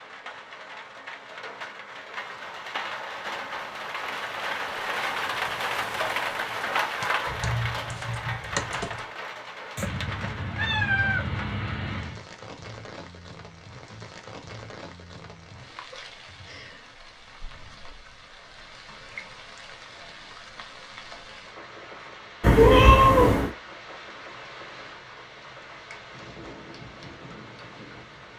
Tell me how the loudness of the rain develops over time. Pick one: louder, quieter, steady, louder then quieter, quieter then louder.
quieter.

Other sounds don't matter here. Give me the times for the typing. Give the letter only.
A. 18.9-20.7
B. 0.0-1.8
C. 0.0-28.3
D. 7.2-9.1
D.